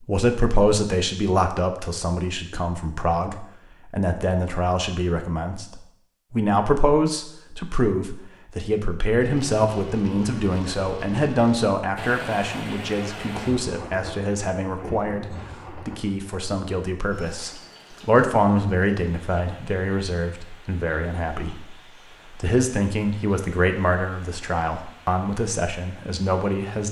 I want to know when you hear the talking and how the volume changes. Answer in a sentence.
You can hear the talking from 0.0 to 26.8 s, at a steady volume.